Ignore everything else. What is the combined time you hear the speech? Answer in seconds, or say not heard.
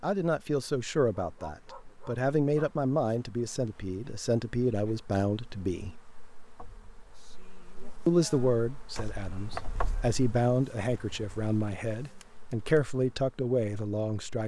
12 s.